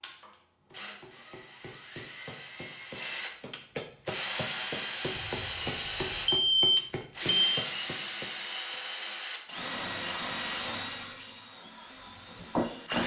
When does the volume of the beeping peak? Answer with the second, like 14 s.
7 s.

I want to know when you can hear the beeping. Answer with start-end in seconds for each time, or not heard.
5.2-7.7.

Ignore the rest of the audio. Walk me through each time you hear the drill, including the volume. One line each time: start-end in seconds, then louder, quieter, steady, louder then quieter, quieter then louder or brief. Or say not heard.
0.0-13.0 louder.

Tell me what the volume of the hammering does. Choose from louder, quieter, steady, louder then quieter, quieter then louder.
louder.